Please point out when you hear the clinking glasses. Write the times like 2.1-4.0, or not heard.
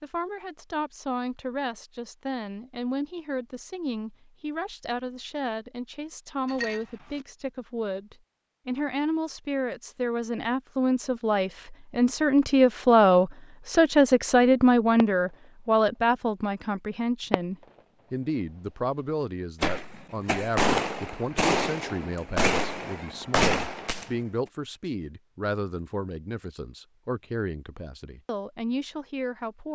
6.5-7.2.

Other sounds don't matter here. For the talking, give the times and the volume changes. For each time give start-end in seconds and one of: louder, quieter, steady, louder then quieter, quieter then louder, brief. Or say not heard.
0.0-29.7 louder then quieter.